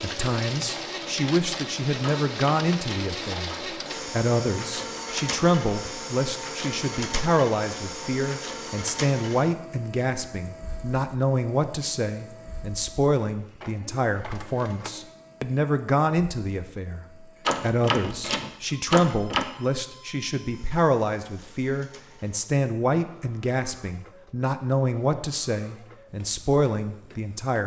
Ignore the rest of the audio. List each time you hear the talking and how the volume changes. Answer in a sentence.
The talking can be heard from 0.0 to 27.6 s, at a steady volume.